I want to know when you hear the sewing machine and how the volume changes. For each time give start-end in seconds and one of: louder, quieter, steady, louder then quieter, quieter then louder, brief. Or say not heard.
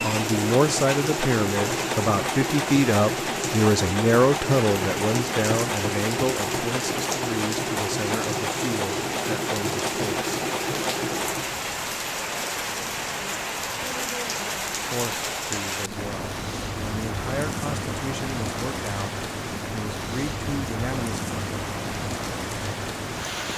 0.0-11.6 steady.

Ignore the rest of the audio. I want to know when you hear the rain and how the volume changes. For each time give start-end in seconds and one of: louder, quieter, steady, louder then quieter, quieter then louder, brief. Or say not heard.
0.0-23.5 steady.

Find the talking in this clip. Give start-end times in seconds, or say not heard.
0.0-10.2, 14.9-21.2.